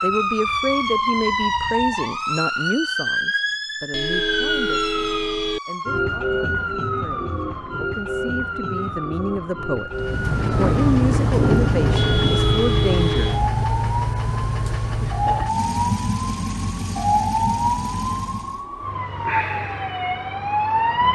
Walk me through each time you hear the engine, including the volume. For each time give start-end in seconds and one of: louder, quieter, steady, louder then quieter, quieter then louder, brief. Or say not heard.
9.9-18.6 quieter.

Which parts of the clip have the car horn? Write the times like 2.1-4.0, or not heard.
3.9-5.6, 11.9-13.4.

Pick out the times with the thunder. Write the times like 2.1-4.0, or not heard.
9.9-12.5.